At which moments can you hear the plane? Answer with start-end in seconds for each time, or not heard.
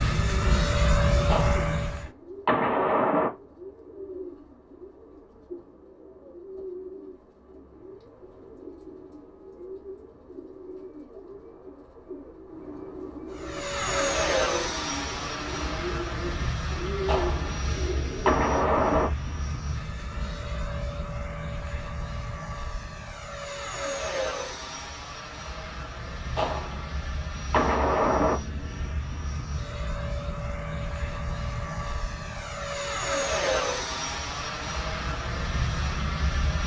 0.0-2.1, 13.3-36.6.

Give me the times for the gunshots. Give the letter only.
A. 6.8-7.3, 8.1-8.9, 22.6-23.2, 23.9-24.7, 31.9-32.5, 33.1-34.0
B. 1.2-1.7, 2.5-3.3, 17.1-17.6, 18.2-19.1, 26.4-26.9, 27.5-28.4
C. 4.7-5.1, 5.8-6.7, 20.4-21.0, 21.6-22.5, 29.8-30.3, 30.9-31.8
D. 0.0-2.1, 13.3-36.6
B.